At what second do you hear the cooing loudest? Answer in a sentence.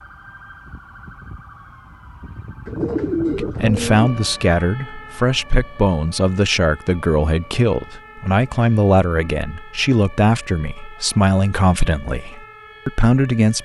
The loudest moment of the cooing is at 3 seconds.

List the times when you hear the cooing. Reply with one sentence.
The cooing can be heard from 2.6 to 4.4 s.